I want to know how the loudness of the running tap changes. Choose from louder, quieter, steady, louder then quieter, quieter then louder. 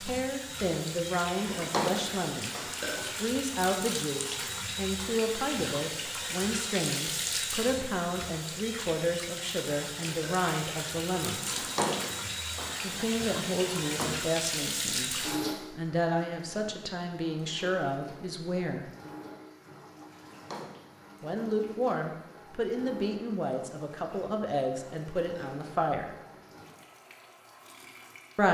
quieter.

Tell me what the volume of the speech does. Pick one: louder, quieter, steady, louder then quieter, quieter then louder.
steady.